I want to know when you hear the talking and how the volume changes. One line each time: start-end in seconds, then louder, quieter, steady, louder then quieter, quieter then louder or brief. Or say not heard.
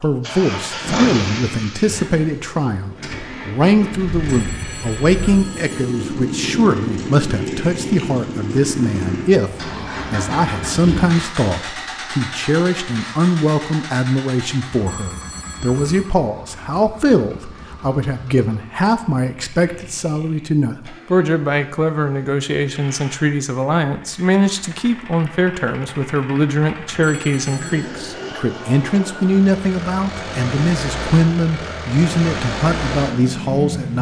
0.0-33.9 steady.